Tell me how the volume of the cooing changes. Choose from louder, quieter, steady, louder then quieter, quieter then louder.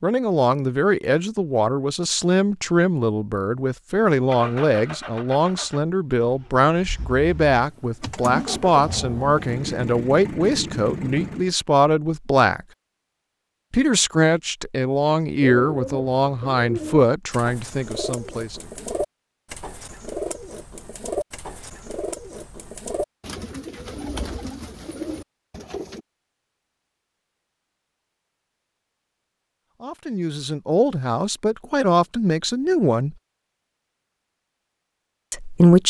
steady.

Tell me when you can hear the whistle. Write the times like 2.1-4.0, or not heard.
not heard.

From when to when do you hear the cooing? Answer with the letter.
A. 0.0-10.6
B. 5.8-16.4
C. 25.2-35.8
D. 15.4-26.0
D.